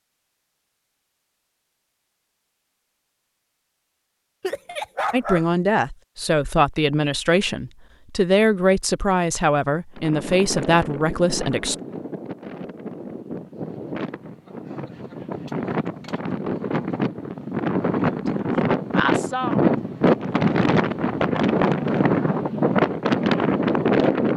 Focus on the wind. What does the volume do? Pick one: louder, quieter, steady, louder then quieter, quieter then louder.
louder.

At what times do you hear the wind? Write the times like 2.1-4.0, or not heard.
9.9-24.3.